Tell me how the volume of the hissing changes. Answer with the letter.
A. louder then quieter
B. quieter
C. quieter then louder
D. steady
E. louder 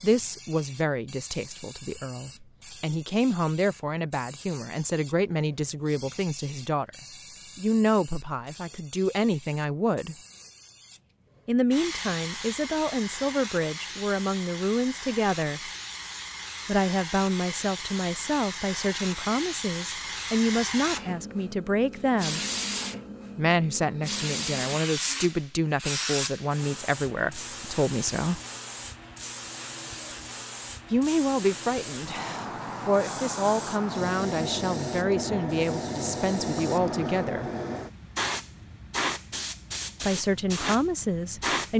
E.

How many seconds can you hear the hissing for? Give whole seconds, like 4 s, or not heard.
42 s.